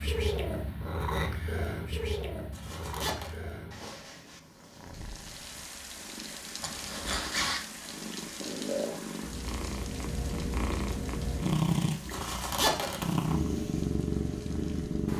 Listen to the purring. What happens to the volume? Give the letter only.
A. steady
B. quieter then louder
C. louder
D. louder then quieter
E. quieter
B.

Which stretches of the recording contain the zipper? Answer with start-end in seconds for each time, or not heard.
2.5-3.4, 6.6-7.7, 12.1-13.2.